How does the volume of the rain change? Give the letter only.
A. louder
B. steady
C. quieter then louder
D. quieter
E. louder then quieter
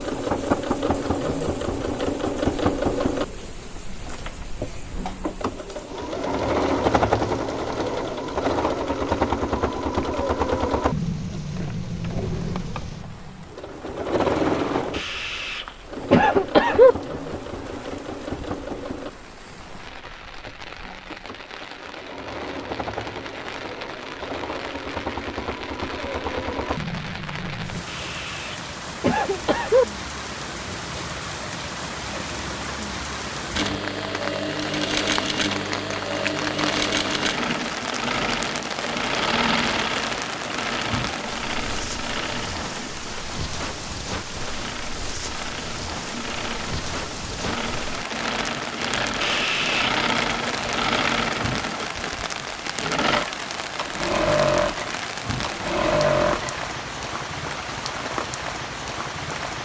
A.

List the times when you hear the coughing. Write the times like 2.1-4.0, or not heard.
14.9-16.9, 27.9-29.9, 49.2-50.0.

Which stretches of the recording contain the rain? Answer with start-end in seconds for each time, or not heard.
0.0-59.6.